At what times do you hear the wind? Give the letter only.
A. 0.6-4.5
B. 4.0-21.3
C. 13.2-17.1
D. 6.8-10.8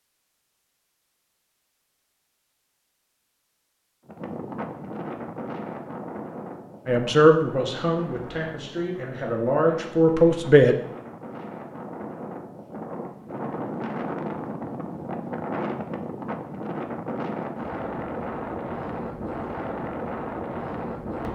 B.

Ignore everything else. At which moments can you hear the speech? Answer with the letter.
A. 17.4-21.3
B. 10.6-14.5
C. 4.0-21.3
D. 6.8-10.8
D.